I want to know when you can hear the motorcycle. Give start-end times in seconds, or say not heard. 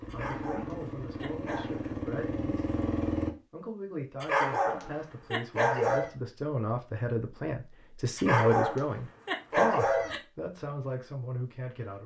0.0-3.3.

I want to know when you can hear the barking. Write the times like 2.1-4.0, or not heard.
0.1-1.8, 4.2-6.1, 8.2-10.2.